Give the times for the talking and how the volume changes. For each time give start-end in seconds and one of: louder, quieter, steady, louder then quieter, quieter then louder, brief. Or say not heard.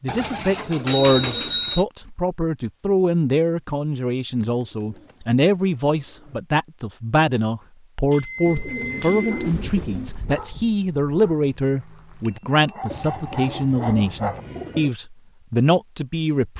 0.0-16.5 steady.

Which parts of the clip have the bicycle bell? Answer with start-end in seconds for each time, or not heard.
0.8-1.9, 8.1-9.5, 12.2-13.5.